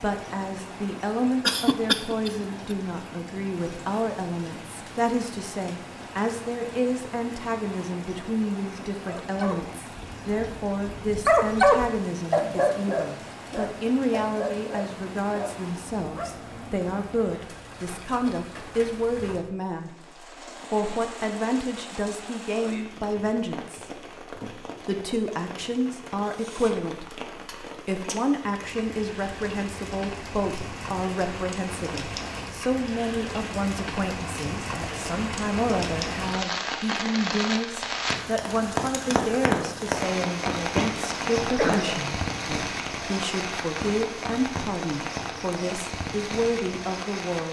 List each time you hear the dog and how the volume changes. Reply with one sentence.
You can hear the dog from 9.1 to 16.4 s, getting louder then quieter.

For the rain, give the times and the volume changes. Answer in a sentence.
You can hear the rain from 0.0 to 47.4 s, getting louder.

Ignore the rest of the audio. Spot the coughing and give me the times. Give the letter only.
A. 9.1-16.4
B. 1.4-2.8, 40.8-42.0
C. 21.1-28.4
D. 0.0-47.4
B.